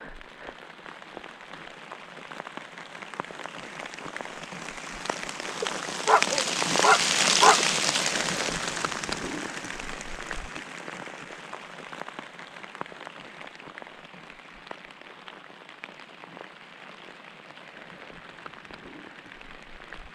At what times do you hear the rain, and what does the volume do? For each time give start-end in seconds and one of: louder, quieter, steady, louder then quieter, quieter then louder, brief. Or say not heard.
0.0-20.0 louder then quieter.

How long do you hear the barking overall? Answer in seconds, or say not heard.
2 s.